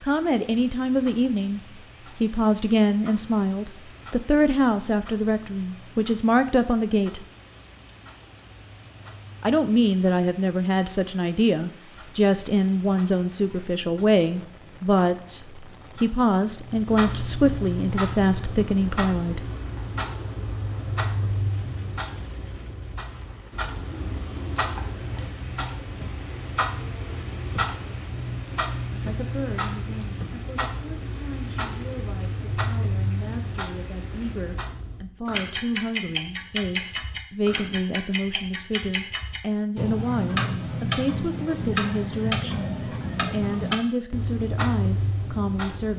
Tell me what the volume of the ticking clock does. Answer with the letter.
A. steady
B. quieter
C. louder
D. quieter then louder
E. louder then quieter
C.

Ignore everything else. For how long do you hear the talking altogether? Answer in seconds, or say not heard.
34 s.